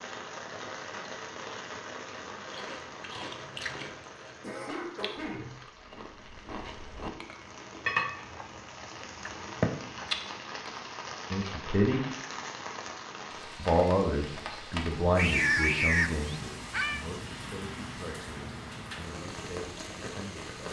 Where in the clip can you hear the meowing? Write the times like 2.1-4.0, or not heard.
15.2-17.1.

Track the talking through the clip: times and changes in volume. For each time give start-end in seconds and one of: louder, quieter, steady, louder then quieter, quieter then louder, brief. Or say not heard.
11.3-12.0 brief
13.6-20.6 quieter.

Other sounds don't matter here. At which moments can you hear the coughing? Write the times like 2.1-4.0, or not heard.
4.4-5.5.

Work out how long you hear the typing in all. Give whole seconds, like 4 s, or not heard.
not heard.